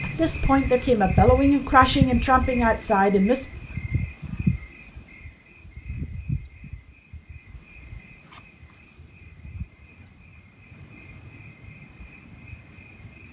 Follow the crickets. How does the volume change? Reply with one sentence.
The volume of the crickets goes down.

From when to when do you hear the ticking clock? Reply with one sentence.
You can't hear the ticking clock here.